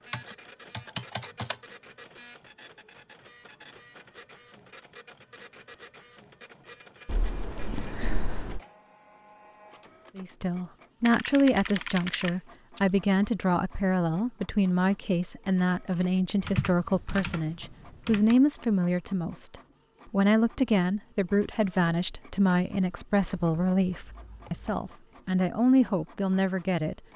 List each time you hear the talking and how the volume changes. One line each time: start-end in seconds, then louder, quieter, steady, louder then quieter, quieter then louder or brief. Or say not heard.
10.2-27.0 steady.